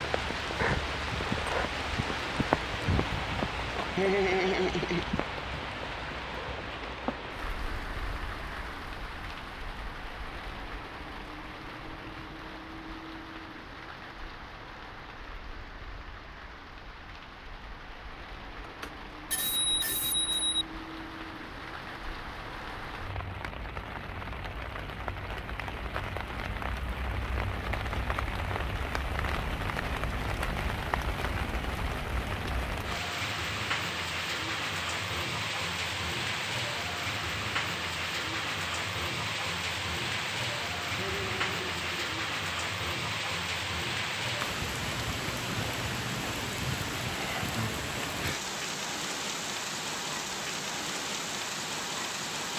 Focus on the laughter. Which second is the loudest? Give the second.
4 s.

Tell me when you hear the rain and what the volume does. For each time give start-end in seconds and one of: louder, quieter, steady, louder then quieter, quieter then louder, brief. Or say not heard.
0.0-52.5 quieter then louder.